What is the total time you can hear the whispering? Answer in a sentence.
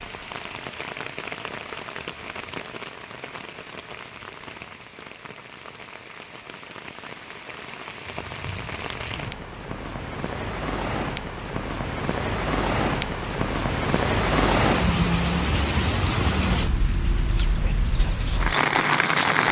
You can hear the whispering for 2 seconds altogether.